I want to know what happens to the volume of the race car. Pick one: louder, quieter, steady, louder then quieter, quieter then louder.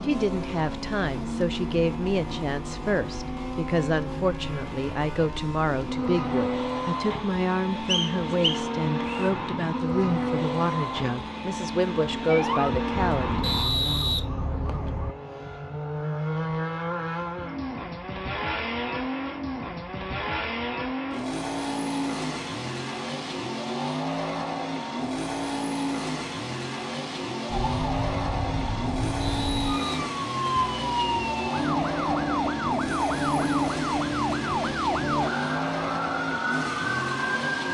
steady.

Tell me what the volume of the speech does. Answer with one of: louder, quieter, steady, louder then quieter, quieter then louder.
steady.